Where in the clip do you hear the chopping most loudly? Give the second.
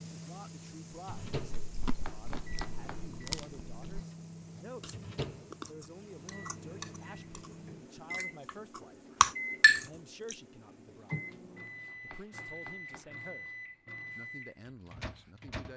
2 s.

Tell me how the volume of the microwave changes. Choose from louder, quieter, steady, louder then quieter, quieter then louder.
steady.